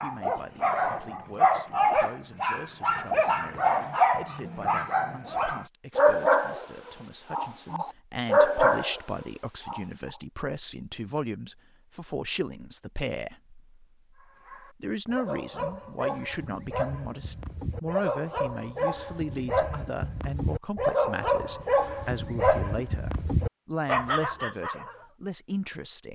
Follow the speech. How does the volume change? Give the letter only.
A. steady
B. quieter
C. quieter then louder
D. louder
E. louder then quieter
D.